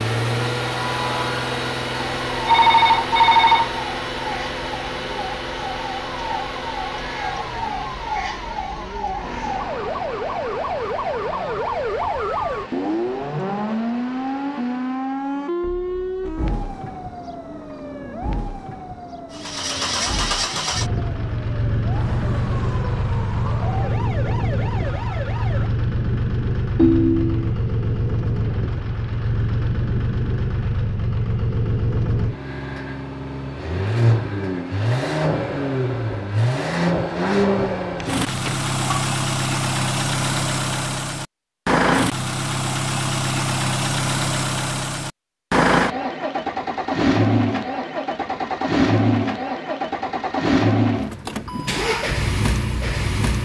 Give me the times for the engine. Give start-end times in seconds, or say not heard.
0.0-15.2, 19.3-53.4.